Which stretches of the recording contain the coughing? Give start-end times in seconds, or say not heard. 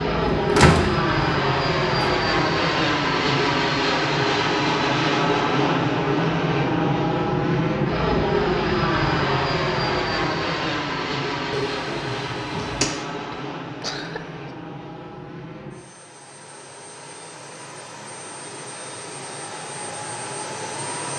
13.1-14.4.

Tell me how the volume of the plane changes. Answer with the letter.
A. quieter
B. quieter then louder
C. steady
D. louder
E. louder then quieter
A.